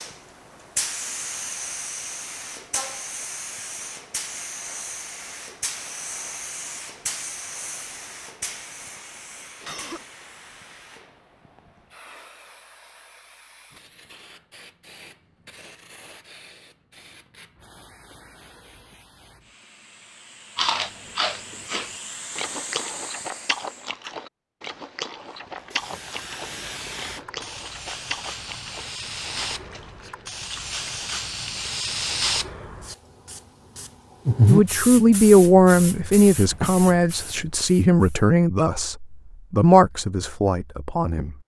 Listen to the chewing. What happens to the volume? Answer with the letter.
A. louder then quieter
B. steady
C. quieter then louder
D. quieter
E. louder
D.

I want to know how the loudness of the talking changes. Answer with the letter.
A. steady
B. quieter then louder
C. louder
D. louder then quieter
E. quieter
E.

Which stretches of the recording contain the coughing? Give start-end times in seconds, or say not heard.
9.6-10.2.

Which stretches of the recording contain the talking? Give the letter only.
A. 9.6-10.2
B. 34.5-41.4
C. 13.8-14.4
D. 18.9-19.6
B.